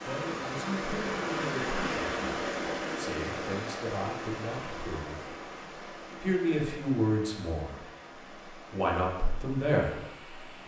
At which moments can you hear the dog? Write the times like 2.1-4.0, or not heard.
not heard.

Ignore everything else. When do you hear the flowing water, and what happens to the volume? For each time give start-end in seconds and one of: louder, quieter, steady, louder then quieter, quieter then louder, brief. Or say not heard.
0.0-10.6 quieter.